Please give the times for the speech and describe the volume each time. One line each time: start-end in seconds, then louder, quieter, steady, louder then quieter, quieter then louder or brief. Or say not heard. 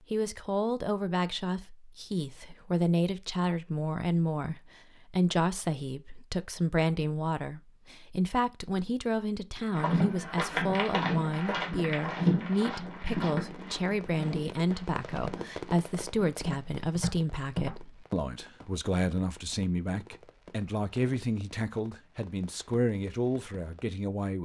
0.1-24.4 steady.